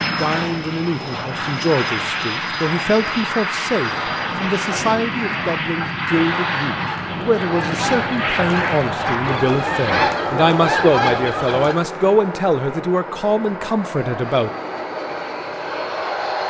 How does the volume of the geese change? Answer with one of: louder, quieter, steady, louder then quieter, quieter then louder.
louder.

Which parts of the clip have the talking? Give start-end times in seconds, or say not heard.
0.0-14.5.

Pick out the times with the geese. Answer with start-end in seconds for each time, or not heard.
5.8-11.8.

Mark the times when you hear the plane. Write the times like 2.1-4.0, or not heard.
0.0-16.4.